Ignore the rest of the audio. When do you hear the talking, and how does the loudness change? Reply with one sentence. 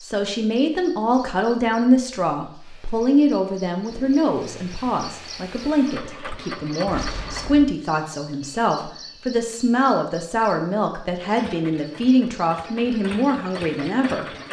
The talking can be heard from 0.0 to 14.2 s, at a steady volume.